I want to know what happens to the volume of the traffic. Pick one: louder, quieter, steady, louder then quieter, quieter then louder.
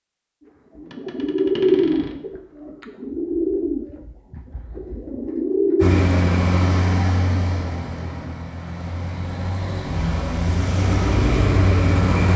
quieter then louder.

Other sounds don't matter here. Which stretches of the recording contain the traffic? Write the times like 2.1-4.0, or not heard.
5.8-12.3.